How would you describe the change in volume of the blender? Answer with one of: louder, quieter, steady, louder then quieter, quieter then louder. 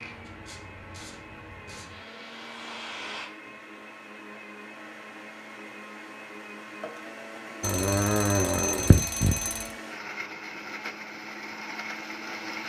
louder.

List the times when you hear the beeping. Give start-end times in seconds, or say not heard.
7.6-9.7.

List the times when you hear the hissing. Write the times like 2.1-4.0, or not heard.
0.0-3.3.